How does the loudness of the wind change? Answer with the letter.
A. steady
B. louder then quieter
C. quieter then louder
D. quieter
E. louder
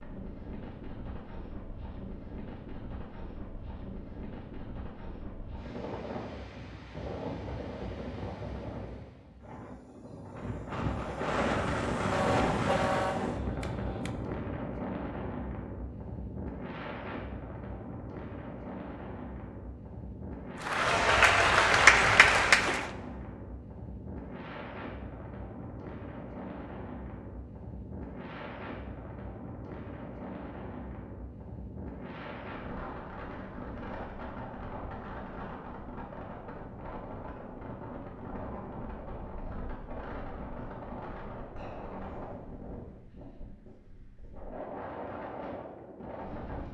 B.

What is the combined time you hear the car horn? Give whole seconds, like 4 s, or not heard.
2 s.